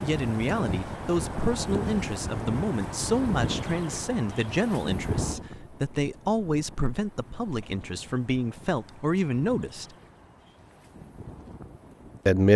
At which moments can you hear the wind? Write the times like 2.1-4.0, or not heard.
0.0-12.4.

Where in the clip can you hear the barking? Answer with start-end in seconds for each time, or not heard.
not heard.